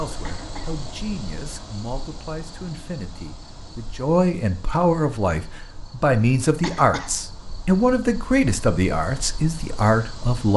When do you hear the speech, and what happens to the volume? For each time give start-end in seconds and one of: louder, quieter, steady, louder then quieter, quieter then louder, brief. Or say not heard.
0.0-10.5 louder.